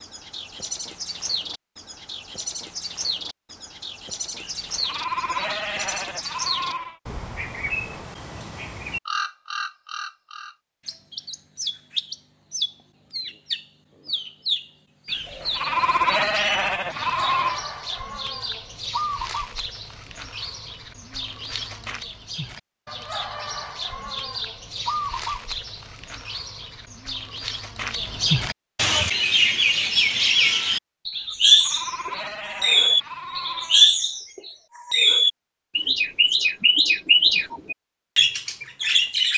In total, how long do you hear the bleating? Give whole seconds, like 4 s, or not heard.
8 s.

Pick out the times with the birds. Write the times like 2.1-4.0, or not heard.
0.0-39.3.